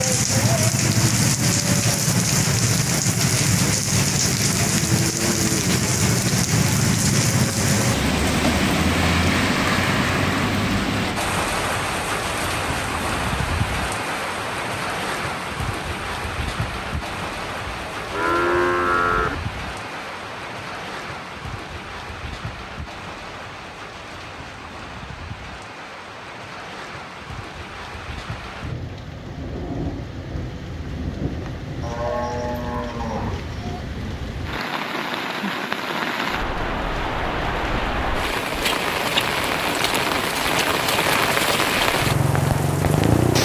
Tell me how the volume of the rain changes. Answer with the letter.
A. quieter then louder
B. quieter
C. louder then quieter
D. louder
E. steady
A.